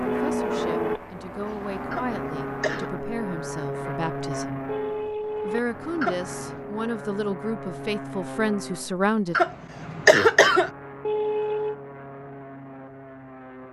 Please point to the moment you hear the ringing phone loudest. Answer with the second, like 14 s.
11 s.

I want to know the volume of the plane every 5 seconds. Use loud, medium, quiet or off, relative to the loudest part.
loud, medium, medium.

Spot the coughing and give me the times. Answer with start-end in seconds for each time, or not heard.
1.9-2.9, 6.0-6.6, 9.3-10.7.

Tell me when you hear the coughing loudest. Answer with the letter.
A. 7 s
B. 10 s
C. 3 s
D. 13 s
B.